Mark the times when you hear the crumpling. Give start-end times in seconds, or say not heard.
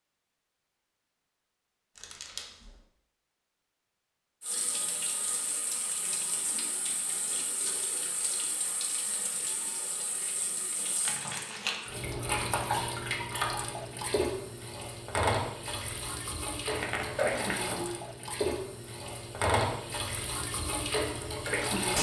1.9-2.7, 11.1-11.8, 16.7-17.6.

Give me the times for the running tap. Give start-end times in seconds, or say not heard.
4.4-21.9.